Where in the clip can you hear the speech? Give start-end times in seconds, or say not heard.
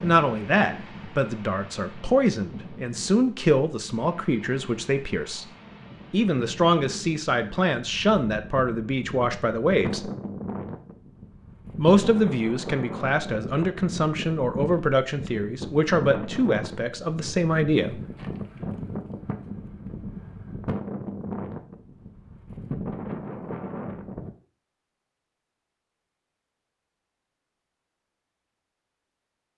0.0-5.5, 6.1-10.1, 11.8-18.0.